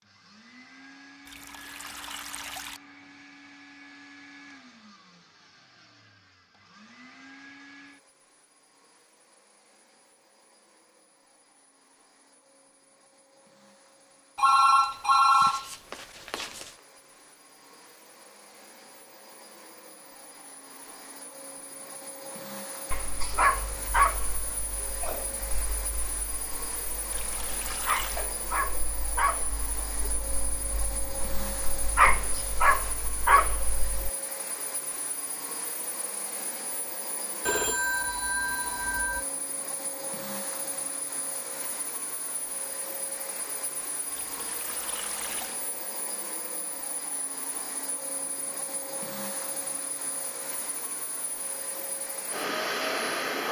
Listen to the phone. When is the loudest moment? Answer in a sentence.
The loudest moment of the phone is at 15 seconds.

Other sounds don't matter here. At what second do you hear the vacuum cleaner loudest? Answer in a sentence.
The volume of the vacuum cleaner peaks at 53 seconds.